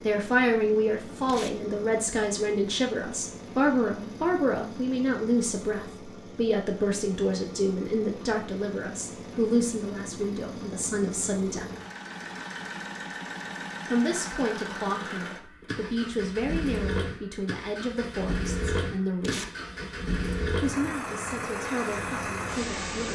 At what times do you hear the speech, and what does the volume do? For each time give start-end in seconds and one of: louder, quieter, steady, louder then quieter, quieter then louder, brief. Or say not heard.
0.0-11.7 steady
13.8-19.5 steady
20.6-23.1 brief.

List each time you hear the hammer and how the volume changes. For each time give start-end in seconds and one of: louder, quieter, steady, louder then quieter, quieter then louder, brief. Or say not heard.
not heard.